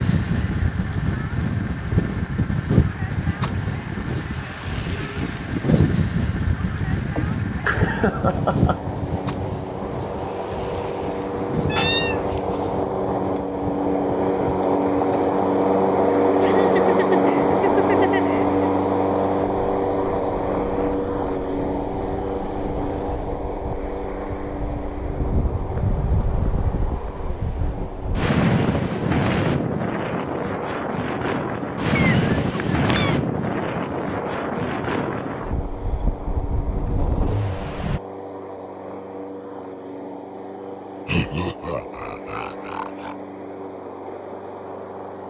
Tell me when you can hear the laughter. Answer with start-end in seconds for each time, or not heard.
7.0-8.8, 16.4-18.6, 41.0-43.1.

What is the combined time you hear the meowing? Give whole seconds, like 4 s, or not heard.
2 s.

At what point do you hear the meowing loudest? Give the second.
12 s.